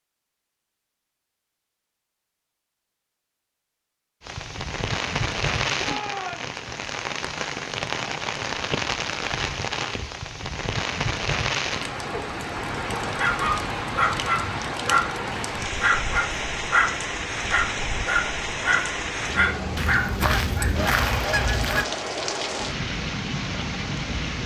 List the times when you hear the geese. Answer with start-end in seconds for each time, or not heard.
19.8-21.9.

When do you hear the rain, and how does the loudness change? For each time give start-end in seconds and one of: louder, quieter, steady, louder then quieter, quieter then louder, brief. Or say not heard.
4.2-24.4 steady.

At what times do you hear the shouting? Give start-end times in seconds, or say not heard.
5.8-6.5.